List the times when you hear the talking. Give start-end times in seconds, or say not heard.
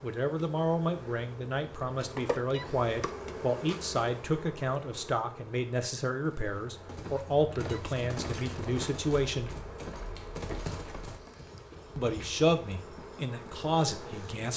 0.0-9.6, 11.9-14.5.